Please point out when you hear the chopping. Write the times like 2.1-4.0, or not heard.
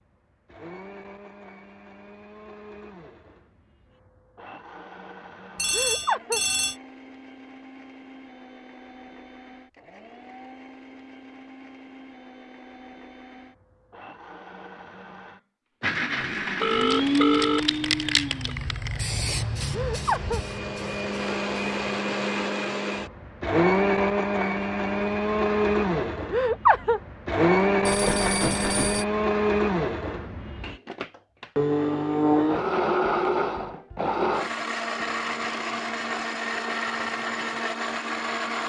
not heard.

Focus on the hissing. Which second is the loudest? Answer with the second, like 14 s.
18 s.